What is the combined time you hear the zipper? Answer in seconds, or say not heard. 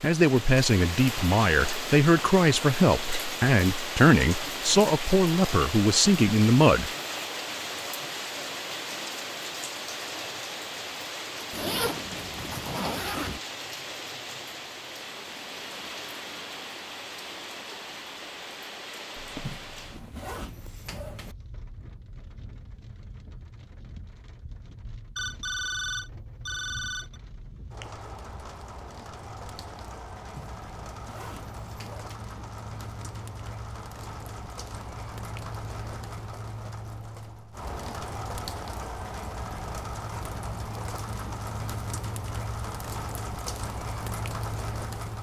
6 s.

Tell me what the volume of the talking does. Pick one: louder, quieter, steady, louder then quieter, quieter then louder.
steady.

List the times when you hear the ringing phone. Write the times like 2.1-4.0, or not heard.
19.1-20.1, 25.1-27.2.